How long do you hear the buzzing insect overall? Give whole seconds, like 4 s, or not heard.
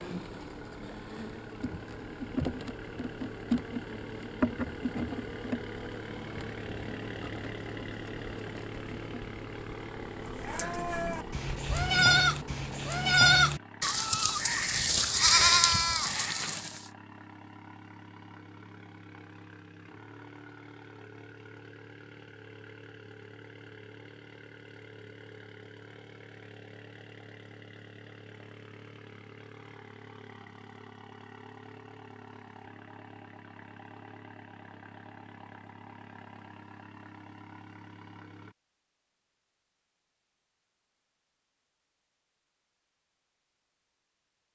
13 s.